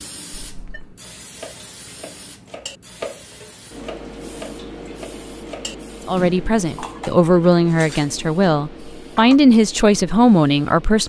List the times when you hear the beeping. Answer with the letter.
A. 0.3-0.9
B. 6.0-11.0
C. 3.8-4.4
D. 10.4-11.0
A.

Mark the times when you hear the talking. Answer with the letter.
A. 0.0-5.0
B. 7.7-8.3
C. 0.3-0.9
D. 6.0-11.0
D.